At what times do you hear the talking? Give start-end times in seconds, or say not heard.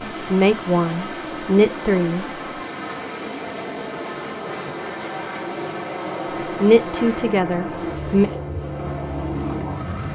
0.2-2.2, 6.6-8.3.